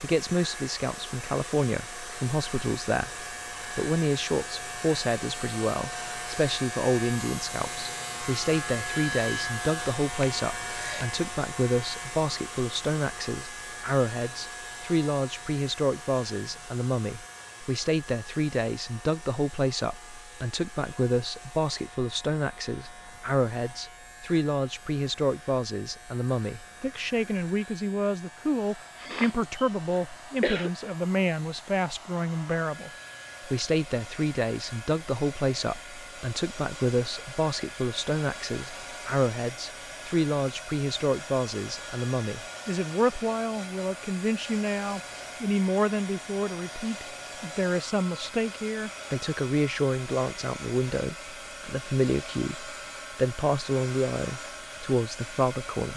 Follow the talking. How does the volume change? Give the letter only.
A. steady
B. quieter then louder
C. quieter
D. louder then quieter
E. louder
A.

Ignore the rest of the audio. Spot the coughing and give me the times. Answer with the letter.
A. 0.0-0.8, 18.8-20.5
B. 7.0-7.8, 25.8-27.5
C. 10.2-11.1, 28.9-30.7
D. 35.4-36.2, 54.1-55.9
C.